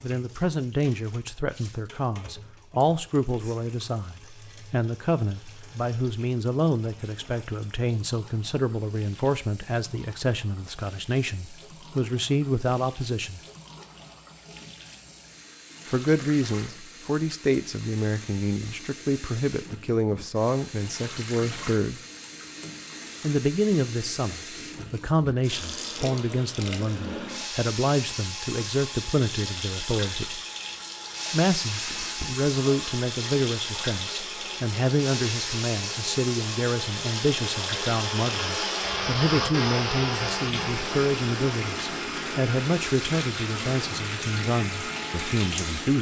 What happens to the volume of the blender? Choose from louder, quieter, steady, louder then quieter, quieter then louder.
louder then quieter.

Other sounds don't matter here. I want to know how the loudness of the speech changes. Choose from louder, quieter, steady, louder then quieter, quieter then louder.
steady.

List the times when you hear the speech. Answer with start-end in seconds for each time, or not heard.
0.0-13.4, 15.8-22.0, 23.2-30.4, 31.3-45.9.